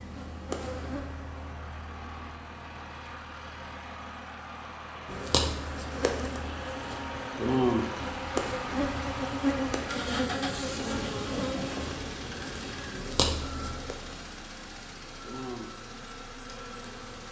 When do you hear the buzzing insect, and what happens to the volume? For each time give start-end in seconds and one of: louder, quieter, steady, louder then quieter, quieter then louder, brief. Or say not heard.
0.0-1.6 brief
5.0-17.2 quieter.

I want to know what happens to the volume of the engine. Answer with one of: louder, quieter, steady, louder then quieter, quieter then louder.
louder then quieter.